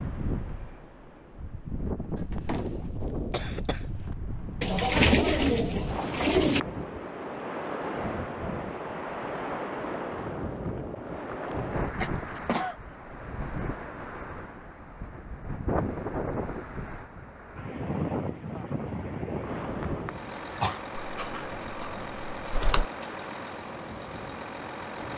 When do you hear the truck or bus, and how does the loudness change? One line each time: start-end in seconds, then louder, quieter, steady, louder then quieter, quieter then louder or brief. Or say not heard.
20.1-25.1 steady.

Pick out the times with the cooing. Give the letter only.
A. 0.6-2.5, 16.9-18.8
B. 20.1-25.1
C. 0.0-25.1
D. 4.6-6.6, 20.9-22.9
D.